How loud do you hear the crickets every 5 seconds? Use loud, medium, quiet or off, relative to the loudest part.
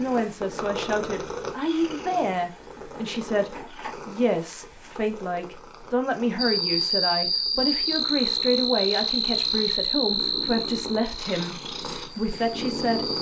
off, loud, medium.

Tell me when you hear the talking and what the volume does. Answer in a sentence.
You can hear the talking from 0.0 to 13.1 s, at a steady volume.